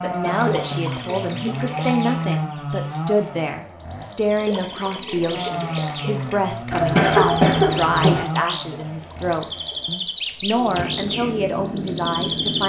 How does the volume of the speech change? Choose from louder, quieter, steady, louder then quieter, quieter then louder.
steady.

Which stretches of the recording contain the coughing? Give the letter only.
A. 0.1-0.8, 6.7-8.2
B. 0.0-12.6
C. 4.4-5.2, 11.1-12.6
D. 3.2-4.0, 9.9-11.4
A.